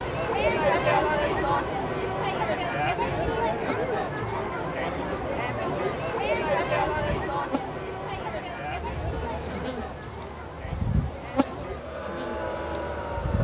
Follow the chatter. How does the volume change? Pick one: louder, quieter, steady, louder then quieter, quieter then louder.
quieter.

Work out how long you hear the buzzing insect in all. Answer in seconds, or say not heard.
13 s.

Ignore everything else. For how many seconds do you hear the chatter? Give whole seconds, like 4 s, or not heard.
13 s.